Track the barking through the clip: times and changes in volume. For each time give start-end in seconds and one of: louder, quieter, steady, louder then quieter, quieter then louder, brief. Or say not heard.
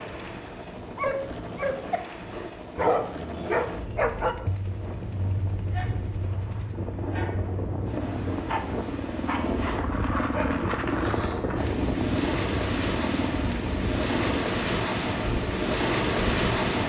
0.9-10.7 quieter then louder.